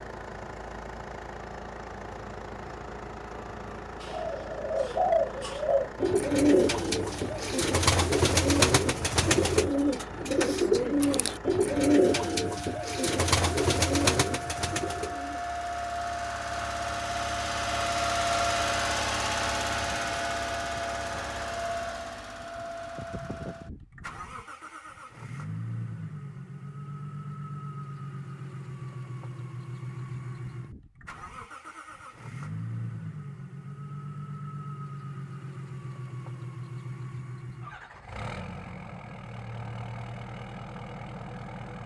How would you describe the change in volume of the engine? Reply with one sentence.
The volume of the engine goes up, then down.